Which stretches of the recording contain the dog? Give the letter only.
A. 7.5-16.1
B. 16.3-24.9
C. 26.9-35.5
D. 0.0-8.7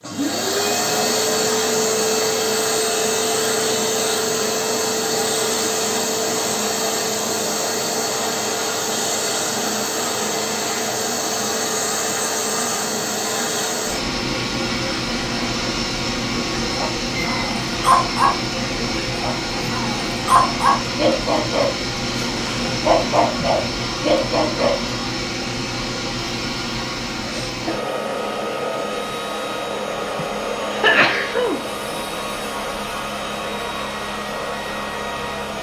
B.